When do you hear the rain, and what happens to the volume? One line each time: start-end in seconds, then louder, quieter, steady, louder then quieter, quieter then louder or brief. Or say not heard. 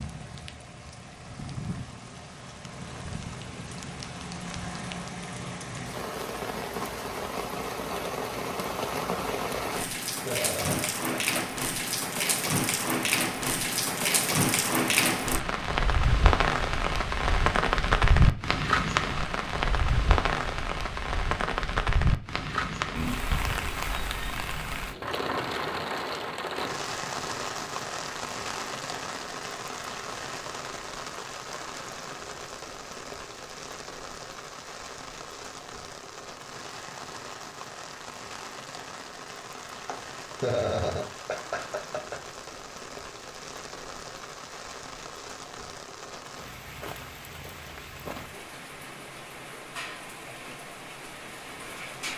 0.0-52.1 louder then quieter.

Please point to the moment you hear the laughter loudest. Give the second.
41 s.